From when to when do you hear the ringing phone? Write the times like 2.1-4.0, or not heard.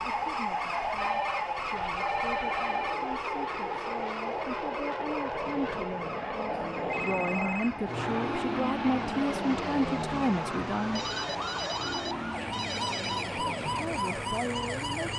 0.9-3.0, 6.5-7.7, 10.9-13.2.